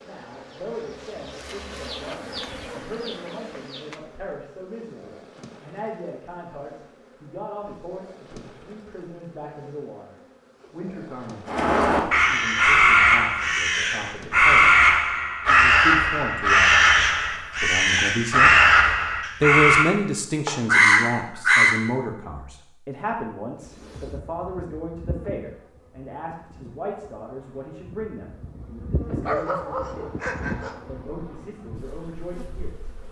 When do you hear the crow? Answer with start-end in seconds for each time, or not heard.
11.4-21.8.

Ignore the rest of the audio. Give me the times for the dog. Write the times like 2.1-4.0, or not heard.
29.2-30.8.